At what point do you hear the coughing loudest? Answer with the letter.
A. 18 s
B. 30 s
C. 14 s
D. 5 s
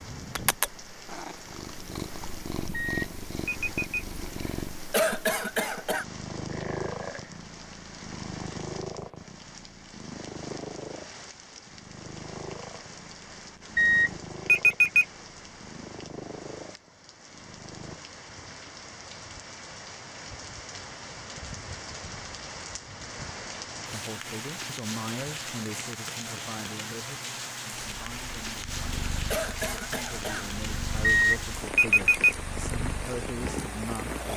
D.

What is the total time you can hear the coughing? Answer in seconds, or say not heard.
2 s.